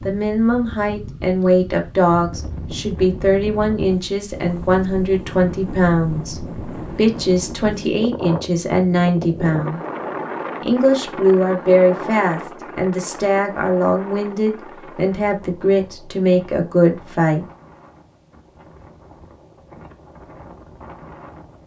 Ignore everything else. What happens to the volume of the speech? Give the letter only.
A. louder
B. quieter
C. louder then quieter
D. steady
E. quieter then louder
D.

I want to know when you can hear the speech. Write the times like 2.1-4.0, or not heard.
0.0-9.8, 10.6-17.4.